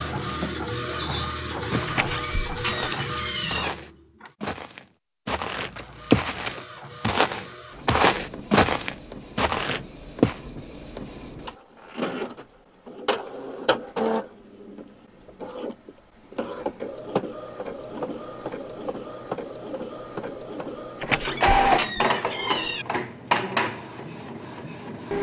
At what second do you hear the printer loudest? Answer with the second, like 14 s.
22 s.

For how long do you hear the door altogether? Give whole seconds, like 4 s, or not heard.
4 s.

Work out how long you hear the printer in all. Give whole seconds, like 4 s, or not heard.
24 s.